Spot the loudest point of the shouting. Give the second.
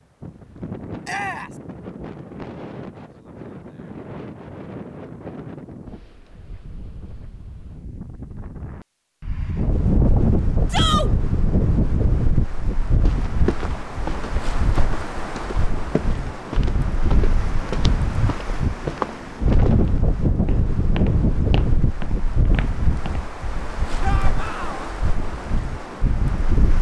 11 s.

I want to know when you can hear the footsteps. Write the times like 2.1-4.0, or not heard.
12.9-23.3.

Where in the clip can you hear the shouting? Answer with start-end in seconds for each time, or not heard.
1.1-1.5, 10.7-11.1, 24.0-24.9.